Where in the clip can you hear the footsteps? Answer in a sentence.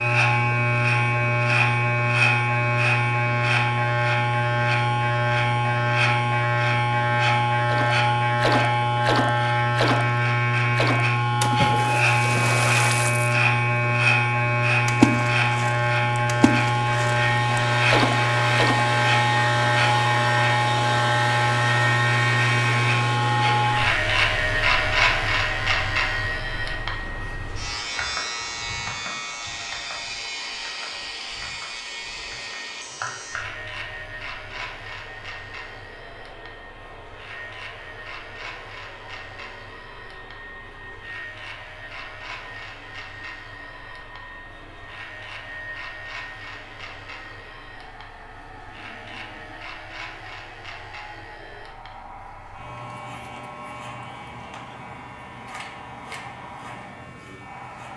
You can't hear the footsteps here.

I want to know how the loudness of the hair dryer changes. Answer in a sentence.
The volume of the hair dryer goes down.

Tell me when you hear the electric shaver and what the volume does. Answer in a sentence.
The electric shaver can be heard from 0.0 to 57.9 s, getting quieter.